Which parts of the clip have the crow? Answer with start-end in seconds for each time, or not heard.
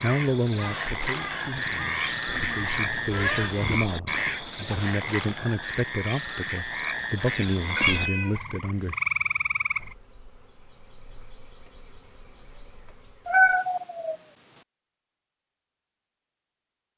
0.0-4.5.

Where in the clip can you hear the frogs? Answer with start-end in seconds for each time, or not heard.
0.0-9.9.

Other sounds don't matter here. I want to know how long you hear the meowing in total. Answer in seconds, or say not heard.
3 s.